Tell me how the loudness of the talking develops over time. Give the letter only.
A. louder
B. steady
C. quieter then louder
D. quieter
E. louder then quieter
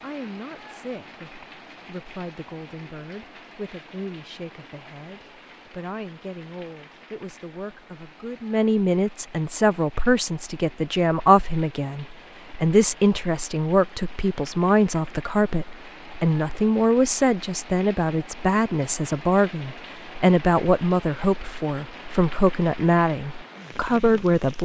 A.